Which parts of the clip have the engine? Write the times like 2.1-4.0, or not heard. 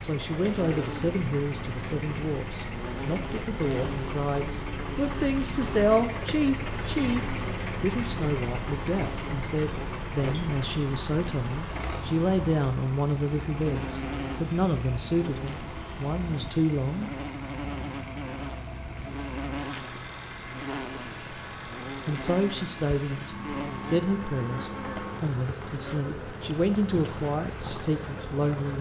0.0-28.7.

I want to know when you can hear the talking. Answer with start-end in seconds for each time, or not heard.
0.0-17.1, 22.1-28.7.